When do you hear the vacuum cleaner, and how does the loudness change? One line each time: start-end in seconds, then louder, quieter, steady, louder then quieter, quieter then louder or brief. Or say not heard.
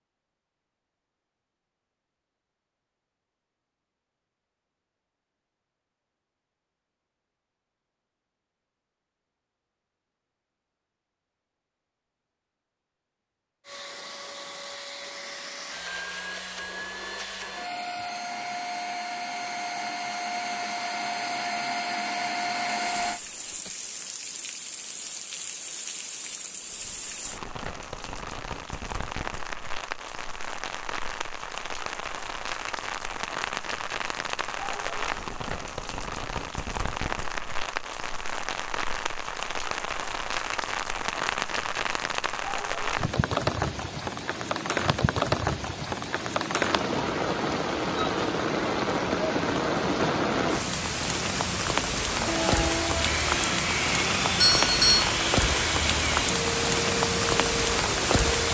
13.7-23.2 louder
52.1-58.4 steady.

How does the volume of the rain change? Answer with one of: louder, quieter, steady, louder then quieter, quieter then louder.
louder.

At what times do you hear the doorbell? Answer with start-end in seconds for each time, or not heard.
54.4-55.1.